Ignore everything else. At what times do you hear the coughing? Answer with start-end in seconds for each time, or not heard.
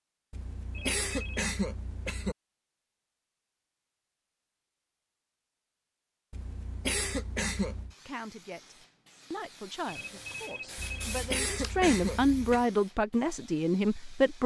0.3-2.4, 6.3-8.0, 10.8-12.7.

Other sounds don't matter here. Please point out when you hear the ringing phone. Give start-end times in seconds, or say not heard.
0.7-1.6, 9.8-11.3.